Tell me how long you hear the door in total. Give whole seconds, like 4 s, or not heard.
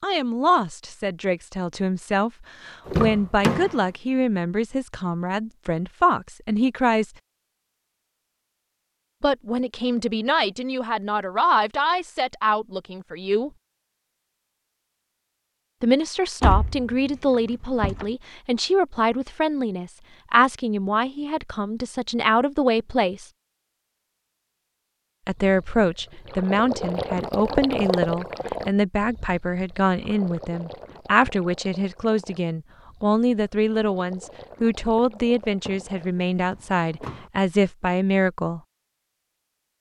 4 s.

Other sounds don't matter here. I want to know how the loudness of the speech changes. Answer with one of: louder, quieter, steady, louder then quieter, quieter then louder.
steady.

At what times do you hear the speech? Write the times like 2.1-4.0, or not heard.
0.0-7.1, 9.2-13.5, 15.8-23.3, 25.2-38.6.